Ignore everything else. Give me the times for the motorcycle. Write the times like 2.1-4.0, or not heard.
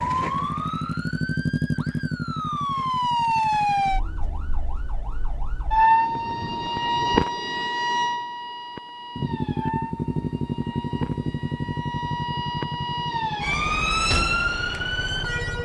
0.0-4.0, 9.2-15.6.